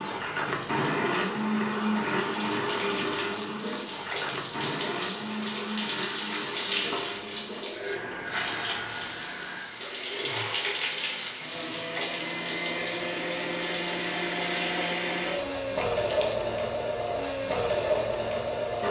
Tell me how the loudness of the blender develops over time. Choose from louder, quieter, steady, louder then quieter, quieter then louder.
quieter then louder.